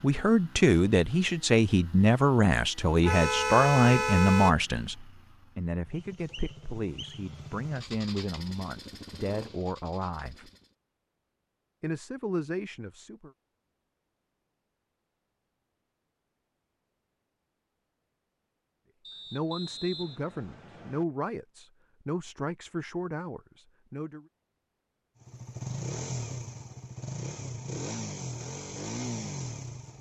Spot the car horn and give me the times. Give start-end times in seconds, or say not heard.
3.0-4.5.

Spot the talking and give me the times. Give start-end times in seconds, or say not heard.
0.0-10.5, 11.8-13.3, 19.3-24.2.